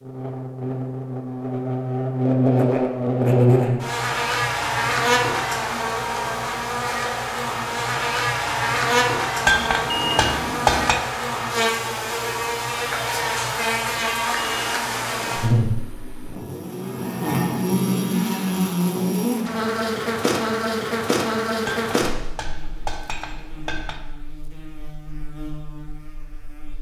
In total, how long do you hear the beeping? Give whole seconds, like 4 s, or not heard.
3 s.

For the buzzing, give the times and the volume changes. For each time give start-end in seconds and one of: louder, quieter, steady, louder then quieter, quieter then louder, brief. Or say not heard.
0.0-26.7 quieter.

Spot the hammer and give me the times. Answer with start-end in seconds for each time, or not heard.
9.4-11.0, 21.6-24.0.